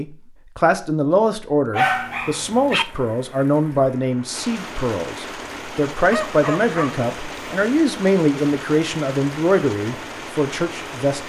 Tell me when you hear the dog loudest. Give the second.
2 s.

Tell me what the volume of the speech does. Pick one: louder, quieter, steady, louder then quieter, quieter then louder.
steady.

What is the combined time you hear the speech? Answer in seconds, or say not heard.
11 s.